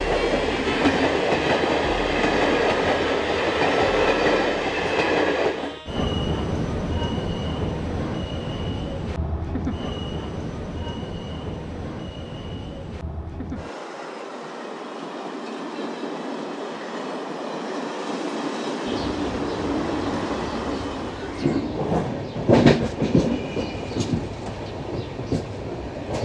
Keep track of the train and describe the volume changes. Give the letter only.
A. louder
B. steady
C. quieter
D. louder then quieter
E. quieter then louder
E.